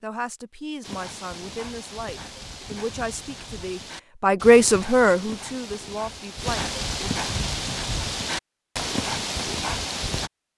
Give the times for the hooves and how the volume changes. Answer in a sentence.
The hooves can be heard from 0.8 to 10.3 s, getting louder.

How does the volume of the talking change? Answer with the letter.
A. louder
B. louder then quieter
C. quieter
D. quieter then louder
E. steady
B.